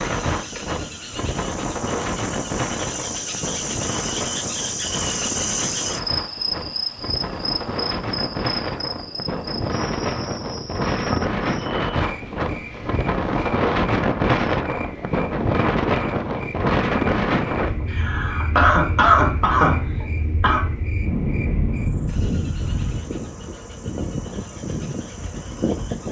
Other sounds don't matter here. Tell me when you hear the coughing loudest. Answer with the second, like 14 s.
19 s.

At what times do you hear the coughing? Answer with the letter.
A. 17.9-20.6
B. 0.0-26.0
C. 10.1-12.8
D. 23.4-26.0
A.